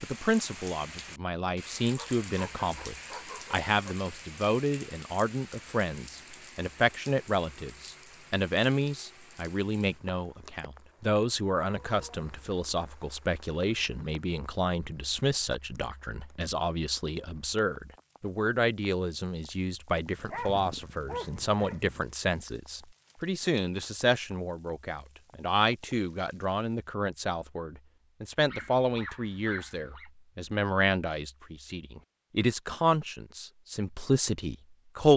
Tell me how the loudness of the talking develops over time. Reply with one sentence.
The volume of the talking stays about the same.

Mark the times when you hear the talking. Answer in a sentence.
The talking can be heard from 0.0 to 35.1 s.